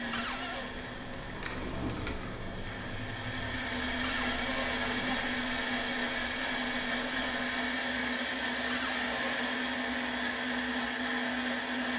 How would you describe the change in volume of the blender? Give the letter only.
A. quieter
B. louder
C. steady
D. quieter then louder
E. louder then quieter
B.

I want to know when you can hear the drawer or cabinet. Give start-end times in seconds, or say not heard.
0.1-0.8, 4.0-5.2, 8.7-9.7.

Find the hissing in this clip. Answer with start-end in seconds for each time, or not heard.
0.0-7.7.